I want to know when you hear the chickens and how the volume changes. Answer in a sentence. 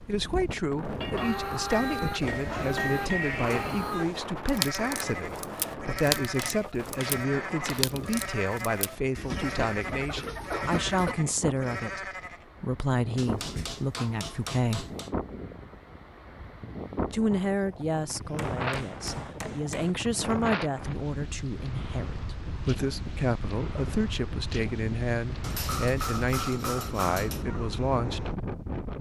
You can hear the chickens from 1.0 to 11.2 s, at a steady volume.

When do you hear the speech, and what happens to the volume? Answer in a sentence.
The speech can be heard from 0.1 to 14.8 s, at a steady volume; and from 17.1 to 28.4 s, at a steady volume.